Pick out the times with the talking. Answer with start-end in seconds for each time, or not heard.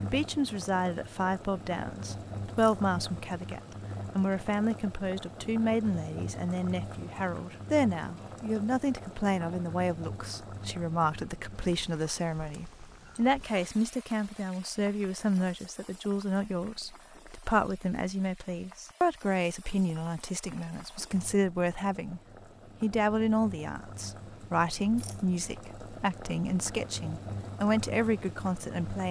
0.0-22.2, 22.8-29.0.